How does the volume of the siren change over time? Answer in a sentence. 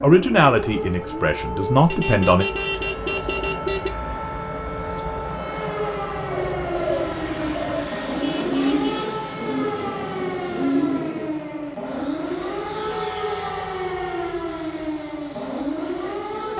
The loudness of the siren stays about the same.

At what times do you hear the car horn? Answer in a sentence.
The car horn can be heard from 1.9 to 3.9 s, from 8.2 to 9.2 s and from 12.9 to 14.9 s.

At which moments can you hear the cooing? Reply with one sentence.
You can hear the cooing from 6.1 to 11.3 s.